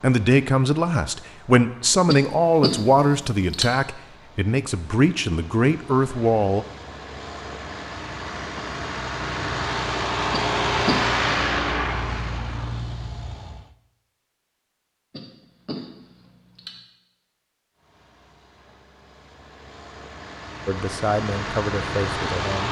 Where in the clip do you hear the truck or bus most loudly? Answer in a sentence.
The loudest moment of the truck or bus is at 11 seconds.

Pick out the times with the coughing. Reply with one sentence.
You can hear the coughing from 2.0 to 3.7 s, from 10.3 to 11.2 s and from 15.1 to 16.8 s.